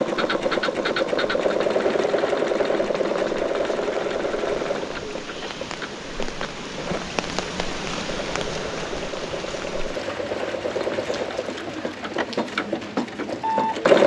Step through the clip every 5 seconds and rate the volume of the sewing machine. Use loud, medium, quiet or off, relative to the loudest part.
loud, medium, loud.